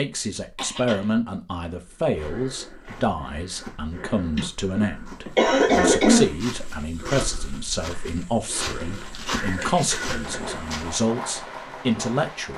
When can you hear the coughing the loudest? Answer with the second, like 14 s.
6 s.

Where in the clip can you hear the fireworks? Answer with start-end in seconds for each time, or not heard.
9.0-12.5.